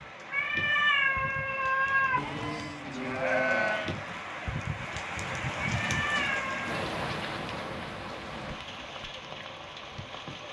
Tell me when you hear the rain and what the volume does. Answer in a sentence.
You can hear the rain from 0.0 to 10.4 s, getting louder then quieter.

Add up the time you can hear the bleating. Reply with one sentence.
The bleating can be heard for 2 seconds in total.